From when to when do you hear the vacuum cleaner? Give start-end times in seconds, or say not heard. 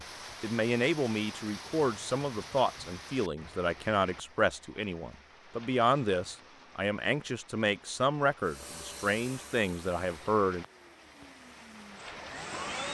8.4-12.8.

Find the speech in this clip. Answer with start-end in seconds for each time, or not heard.
0.0-10.7.